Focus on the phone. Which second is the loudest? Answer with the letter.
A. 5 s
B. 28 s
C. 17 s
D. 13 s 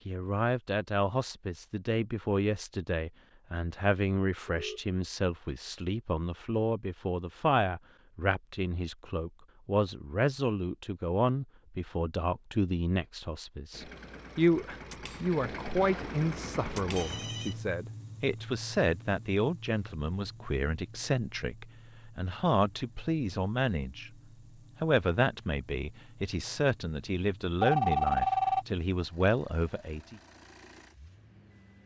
B.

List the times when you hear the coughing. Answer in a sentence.
You can't hear the coughing here.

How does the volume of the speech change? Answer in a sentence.
The volume of the speech stays about the same.